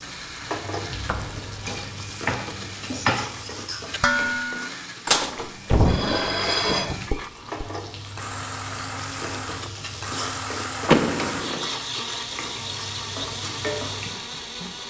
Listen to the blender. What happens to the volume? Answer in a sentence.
The loudness of the blender goes up.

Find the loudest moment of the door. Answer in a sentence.
The loudest moment of the door is at 11 seconds.